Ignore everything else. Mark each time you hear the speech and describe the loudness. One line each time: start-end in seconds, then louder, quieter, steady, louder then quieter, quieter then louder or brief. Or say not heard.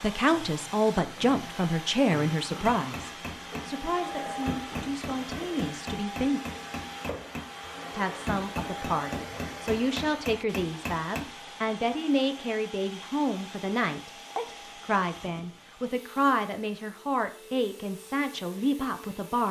0.0-6.4 quieter
8.0-19.4 steady.